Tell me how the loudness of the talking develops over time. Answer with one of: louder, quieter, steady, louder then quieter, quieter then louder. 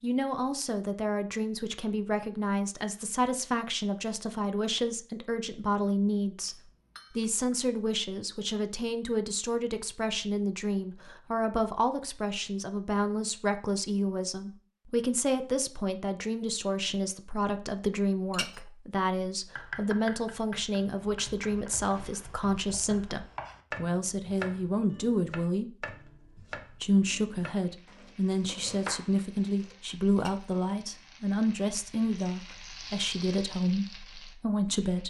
steady.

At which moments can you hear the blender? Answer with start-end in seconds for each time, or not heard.
not heard.